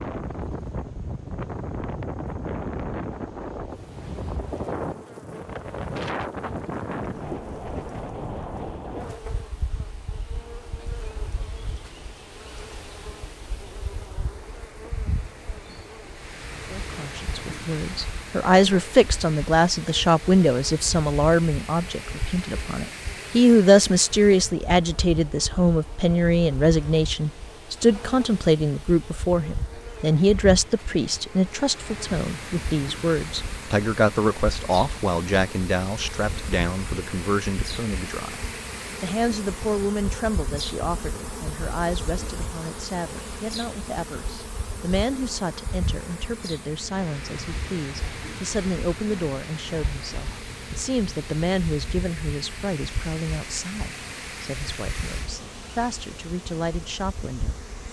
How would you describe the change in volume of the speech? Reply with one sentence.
The loudness of the speech goes down.